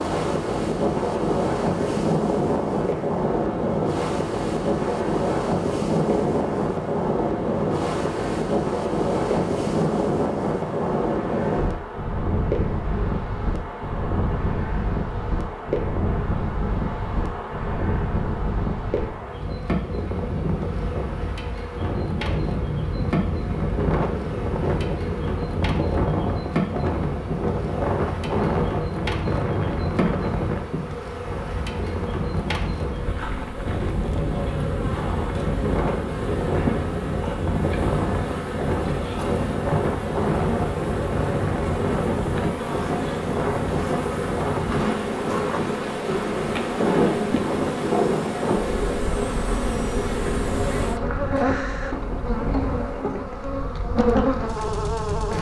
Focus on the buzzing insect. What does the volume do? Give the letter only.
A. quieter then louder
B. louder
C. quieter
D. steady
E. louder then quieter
B.